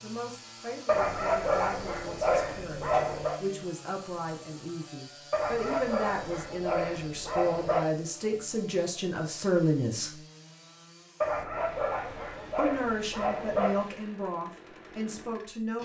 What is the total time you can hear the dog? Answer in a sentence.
You can hear the dog for 8 seconds altogether.